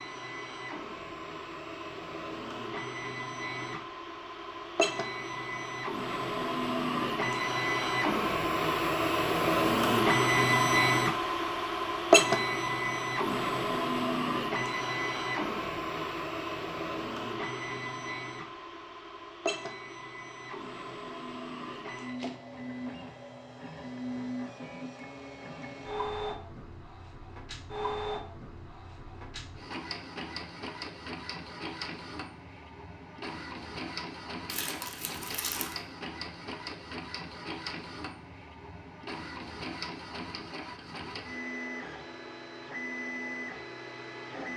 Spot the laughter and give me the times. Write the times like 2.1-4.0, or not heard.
not heard.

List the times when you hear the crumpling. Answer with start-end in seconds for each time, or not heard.
34.5-35.8.